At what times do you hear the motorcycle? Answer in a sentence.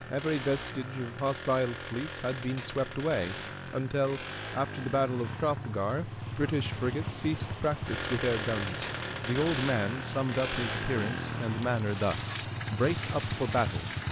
The motorcycle can be heard from 0.0 to 14.0 s.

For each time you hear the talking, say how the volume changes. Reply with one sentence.
You can hear the talking from 0.0 to 13.9 s, at a steady volume.